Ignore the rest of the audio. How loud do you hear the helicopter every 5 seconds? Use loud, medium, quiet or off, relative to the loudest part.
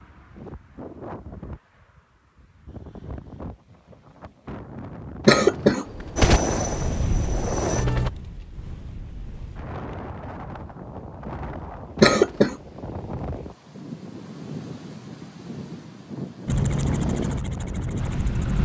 off, loud, off, loud.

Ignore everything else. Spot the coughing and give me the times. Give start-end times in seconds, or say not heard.
5.2-6.4, 11.9-12.6.